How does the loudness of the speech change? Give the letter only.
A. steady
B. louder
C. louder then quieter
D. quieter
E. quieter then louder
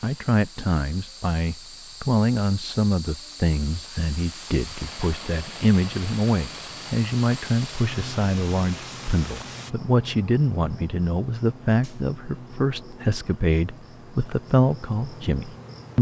A.